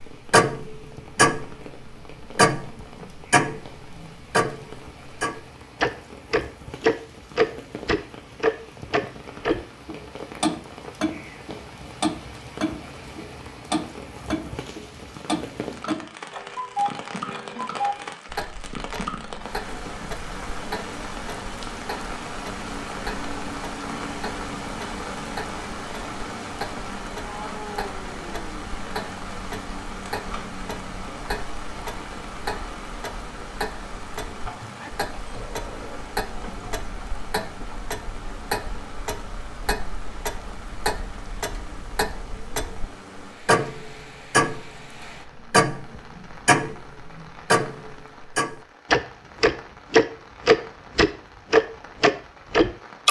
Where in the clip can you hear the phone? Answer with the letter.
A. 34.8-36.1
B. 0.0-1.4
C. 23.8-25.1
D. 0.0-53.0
A.